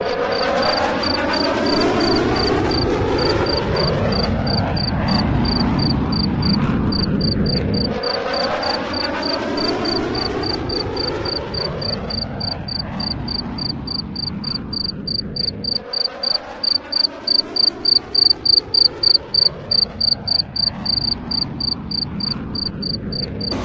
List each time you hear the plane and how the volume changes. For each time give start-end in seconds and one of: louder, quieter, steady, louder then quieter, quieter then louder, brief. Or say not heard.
0.0-23.5 quieter.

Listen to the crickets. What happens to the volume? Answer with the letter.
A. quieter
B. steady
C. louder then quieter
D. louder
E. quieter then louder
D.